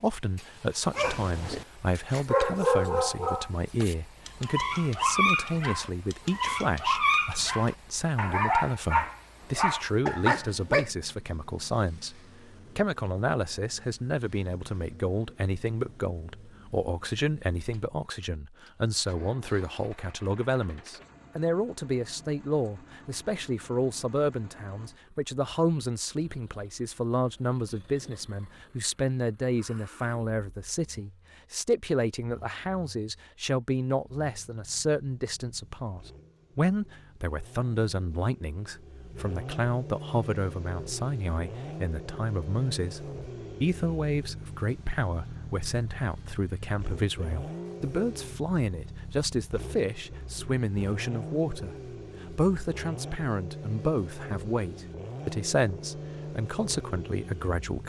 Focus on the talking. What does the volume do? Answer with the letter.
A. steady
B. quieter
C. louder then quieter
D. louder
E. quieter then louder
A.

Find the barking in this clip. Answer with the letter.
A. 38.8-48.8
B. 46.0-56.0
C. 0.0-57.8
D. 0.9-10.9
D.